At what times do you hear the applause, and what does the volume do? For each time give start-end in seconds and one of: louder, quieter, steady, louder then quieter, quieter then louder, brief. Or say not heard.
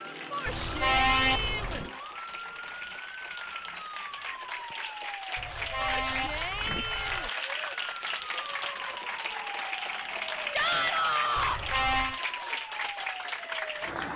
0.0-14.1 louder.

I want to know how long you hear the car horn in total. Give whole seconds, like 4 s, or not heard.
4 s.